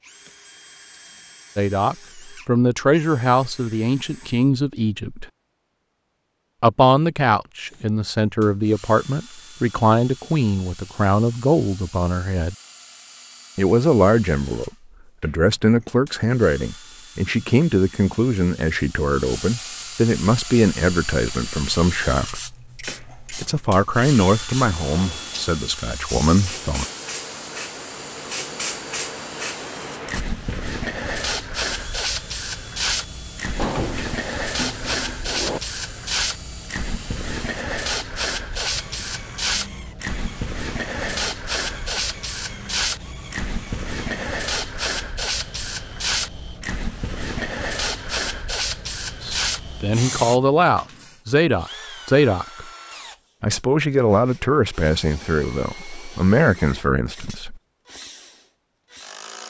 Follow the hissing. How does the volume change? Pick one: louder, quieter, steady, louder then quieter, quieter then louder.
louder.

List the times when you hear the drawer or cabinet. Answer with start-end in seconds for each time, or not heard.
33.5-35.6.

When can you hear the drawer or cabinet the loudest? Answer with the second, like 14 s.
34 s.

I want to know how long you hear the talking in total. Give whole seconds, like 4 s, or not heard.
30 s.